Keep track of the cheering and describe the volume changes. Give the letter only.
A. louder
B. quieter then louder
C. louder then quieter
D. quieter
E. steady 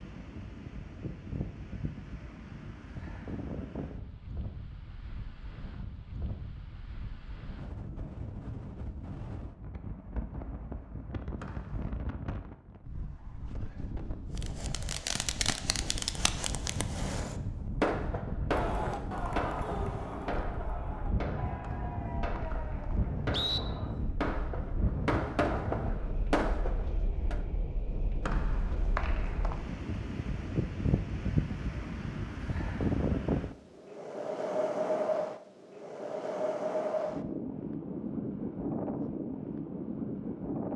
D.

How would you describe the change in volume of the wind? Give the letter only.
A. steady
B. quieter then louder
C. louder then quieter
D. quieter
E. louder
E.